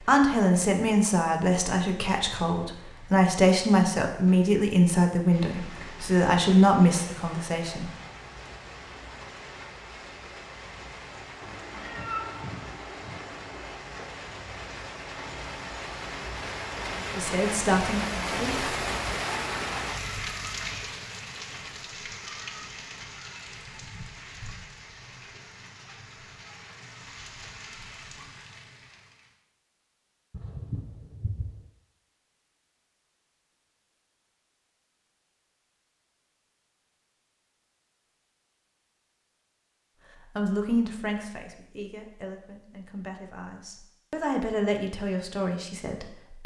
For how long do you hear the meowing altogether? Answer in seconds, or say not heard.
4 s.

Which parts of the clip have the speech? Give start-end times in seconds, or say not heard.
0.1-7.9, 17.1-18.7, 40.4-46.4.